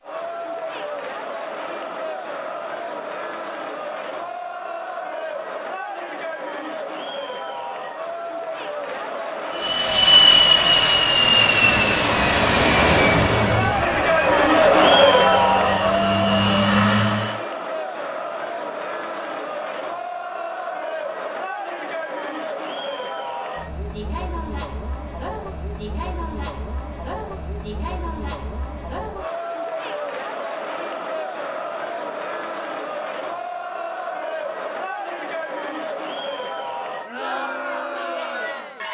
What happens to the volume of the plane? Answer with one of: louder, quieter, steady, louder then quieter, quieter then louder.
quieter then louder.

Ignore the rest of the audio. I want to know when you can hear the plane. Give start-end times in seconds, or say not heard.
9.6-17.4.